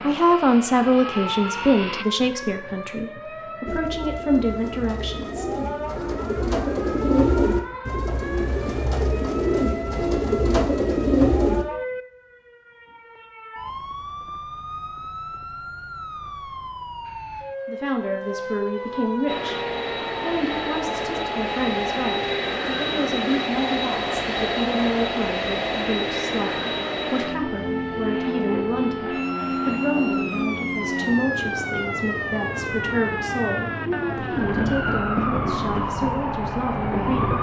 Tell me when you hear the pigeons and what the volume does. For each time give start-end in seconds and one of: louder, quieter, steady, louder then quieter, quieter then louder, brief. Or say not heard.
3.6-11.7 louder.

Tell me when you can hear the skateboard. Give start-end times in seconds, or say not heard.
not heard.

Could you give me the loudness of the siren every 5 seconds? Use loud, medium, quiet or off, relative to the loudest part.
medium, medium, medium, medium, medium, medium, loud, loud.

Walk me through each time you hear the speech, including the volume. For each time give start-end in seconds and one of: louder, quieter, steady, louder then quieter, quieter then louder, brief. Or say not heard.
0.0-5.5 quieter then louder
17.6-37.3 steady.